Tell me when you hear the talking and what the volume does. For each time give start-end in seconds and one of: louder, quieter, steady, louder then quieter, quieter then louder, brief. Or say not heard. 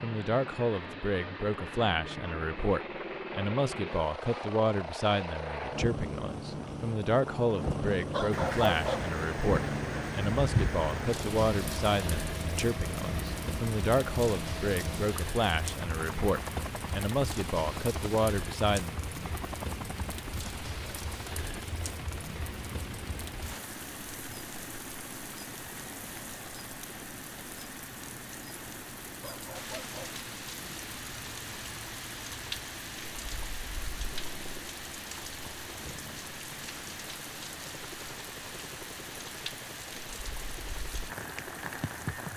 0.0-18.9 steady.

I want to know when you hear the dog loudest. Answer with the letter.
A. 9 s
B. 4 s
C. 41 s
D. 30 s
A.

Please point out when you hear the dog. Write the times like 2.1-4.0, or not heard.
8.1-9.1, 29.2-30.2.